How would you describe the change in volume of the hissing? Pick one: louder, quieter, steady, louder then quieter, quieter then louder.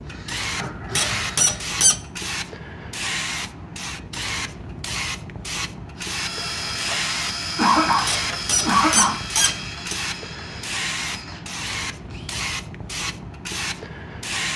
steady.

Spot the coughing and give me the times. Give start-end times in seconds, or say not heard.
0.6-1.4, 7.5-9.2.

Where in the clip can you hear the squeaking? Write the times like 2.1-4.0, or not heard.
0.9-1.9, 8.1-9.9.